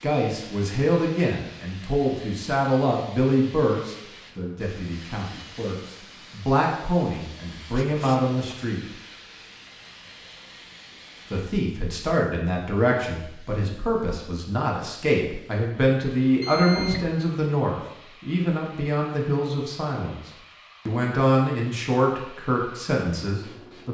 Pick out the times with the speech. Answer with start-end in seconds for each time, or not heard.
0.0-8.8, 11.3-23.8.